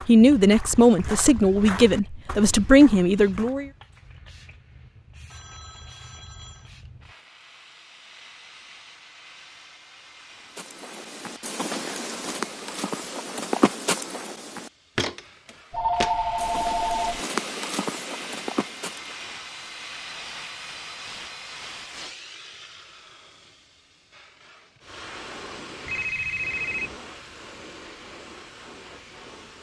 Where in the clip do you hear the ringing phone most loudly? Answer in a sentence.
The volume of the ringing phone peaks at 16 seconds.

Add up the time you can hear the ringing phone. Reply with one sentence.
You can hear the ringing phone for 4 seconds altogether.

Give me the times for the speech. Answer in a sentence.
You can hear the speech from 0.1 to 3.7 s.